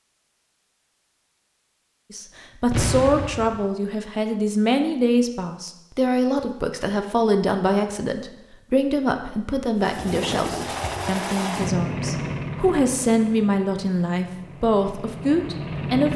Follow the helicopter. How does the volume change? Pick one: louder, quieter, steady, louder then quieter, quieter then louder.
quieter then louder.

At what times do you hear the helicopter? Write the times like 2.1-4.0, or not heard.
9.8-16.1.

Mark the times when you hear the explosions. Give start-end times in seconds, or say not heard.
2.7-3.6.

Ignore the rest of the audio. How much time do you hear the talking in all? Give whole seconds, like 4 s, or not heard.
14 s.